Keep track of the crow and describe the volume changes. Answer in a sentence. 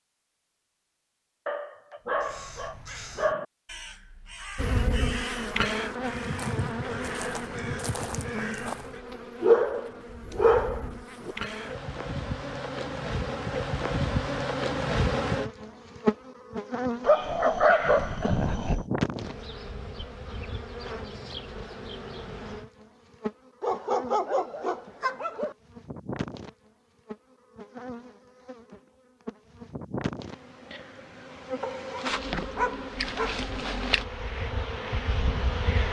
The volume of the crow goes up.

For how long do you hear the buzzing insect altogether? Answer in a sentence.
The buzzing insect can be heard for 31 seconds in total.